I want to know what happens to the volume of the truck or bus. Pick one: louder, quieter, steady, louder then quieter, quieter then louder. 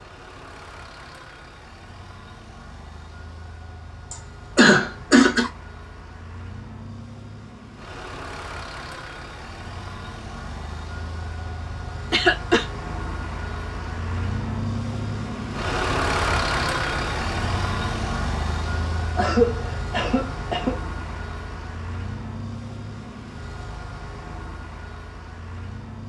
louder then quieter.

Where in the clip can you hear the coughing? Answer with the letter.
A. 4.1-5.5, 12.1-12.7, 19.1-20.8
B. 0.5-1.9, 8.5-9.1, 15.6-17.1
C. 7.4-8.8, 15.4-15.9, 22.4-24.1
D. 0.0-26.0
A.